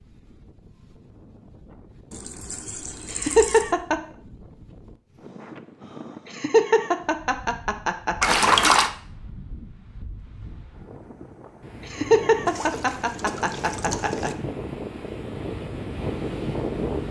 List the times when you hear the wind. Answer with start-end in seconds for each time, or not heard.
0.0-17.0.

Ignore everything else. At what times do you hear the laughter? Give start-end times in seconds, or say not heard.
3.1-4.0, 6.2-8.6, 11.8-14.3.